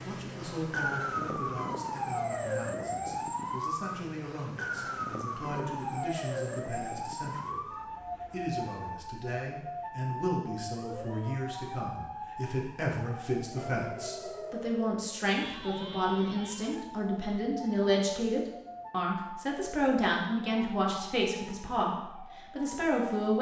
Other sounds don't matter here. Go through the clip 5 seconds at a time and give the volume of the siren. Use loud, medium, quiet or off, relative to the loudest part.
loud, loud, medium, medium, medium.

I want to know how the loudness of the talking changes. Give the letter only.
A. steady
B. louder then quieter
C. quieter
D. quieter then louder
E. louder
E.